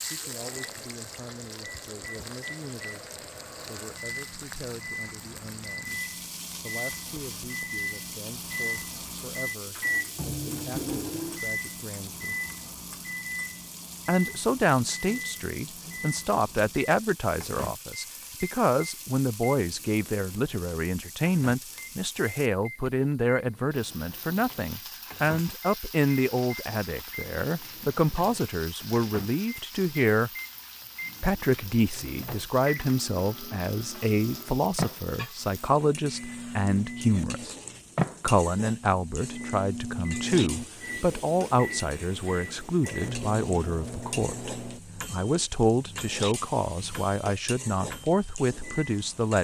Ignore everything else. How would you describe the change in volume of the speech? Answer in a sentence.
The loudness of the speech goes up.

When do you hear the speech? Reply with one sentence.
You can hear the speech from 0.0 to 6.0 s, from 6.6 to 12.4 s, from 14.1 to 30.3 s, from 31.2 to 37.5 s and from 38.2 to 49.3 s.